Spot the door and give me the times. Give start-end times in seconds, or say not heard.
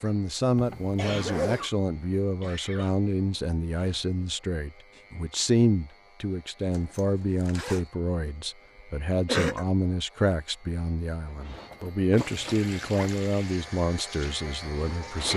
not heard.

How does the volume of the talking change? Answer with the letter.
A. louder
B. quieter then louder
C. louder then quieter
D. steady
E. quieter
D.